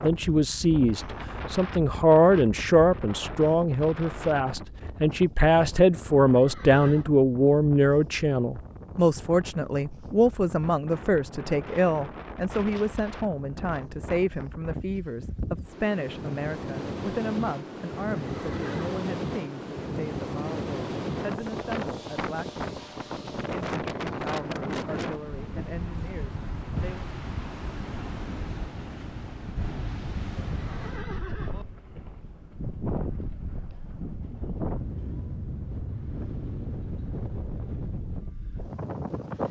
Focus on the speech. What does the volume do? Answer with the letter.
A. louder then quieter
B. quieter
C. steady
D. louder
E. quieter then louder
B.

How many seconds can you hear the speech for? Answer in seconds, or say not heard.
26 s.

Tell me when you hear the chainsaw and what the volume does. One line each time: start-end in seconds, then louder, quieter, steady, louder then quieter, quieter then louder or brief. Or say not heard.
not heard.